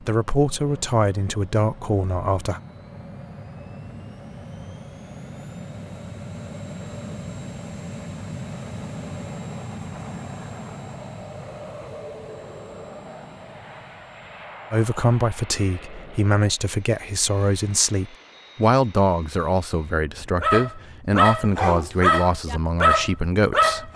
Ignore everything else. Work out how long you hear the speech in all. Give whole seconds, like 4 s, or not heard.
12 s.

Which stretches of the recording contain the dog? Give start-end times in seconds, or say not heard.
20.4-23.9.